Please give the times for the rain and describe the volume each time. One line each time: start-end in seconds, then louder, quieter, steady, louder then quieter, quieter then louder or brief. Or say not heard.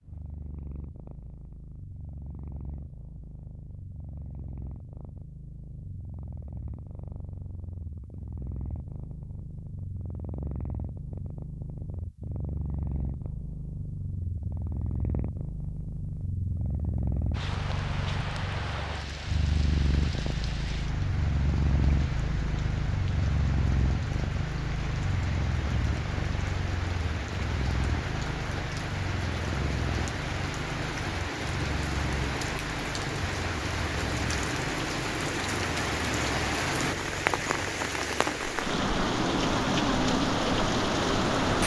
17.3-41.6 louder.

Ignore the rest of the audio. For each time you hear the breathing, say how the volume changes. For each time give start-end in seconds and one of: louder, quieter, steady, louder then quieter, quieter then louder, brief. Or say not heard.
not heard.